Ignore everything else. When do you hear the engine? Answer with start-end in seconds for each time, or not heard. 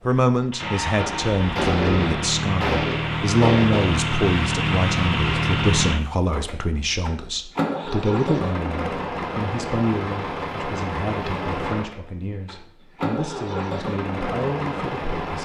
0.0-15.3.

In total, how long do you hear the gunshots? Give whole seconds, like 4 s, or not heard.
3 s.